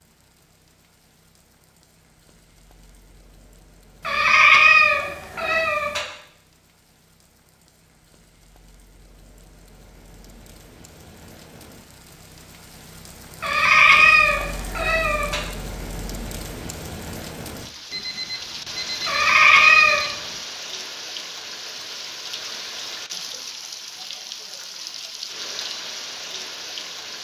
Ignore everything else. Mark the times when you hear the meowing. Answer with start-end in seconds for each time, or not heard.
4.0-6.0, 13.4-15.4, 19.1-20.0.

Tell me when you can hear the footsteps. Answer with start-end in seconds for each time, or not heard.
not heard.